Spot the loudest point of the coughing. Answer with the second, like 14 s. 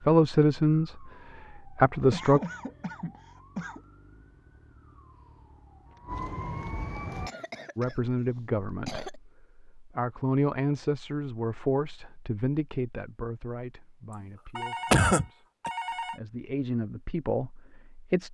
15 s.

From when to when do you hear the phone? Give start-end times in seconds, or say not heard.
14.6-16.2.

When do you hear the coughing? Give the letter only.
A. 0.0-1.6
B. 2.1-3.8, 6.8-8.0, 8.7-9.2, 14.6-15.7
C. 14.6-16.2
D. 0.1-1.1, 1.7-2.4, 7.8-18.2
B.